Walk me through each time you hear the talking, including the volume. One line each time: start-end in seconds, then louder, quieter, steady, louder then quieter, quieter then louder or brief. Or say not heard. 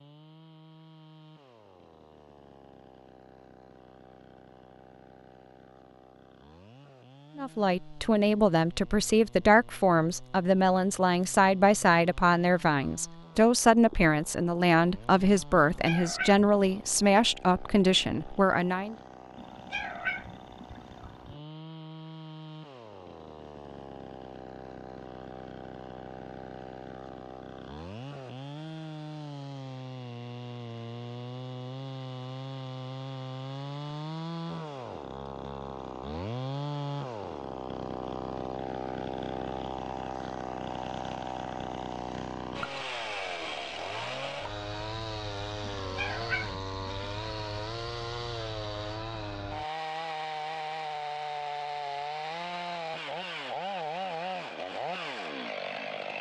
7.3-18.9 steady.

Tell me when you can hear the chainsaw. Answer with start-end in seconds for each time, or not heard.
0.0-56.1.